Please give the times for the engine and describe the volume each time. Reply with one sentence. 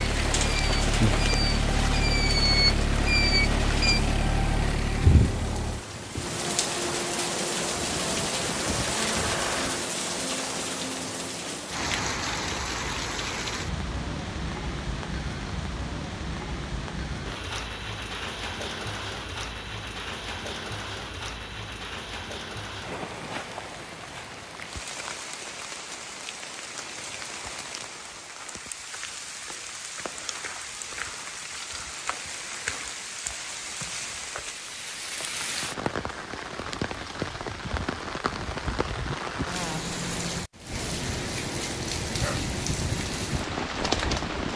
You can hear the engine from 0.0 to 9.8 s, getting quieter then louder.